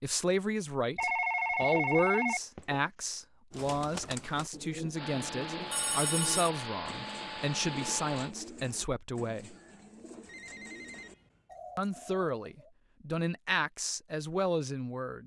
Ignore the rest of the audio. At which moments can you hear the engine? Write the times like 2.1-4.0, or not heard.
5.0-8.3.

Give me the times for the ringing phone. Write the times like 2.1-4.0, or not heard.
0.9-2.8, 5.7-6.5, 10.2-11.6.